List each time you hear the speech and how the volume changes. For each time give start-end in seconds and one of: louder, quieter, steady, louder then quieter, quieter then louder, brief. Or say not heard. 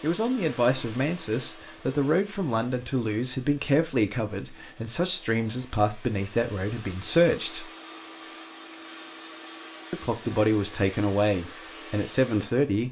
0.0-7.7 steady
9.9-12.8 brief.